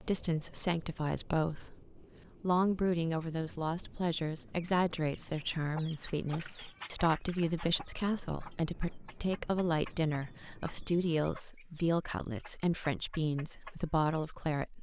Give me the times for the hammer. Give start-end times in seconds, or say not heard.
not heard.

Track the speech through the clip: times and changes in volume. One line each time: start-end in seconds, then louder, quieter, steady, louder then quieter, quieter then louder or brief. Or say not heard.
0.0-14.7 steady.